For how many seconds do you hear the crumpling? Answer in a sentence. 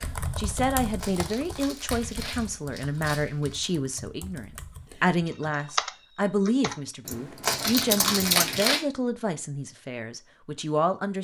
The crumpling can be heard for 4 seconds in total.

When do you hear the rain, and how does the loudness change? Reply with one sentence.
The rain can't be heard in this clip.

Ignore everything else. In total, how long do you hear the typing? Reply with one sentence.
The typing can be heard for 9 seconds in total.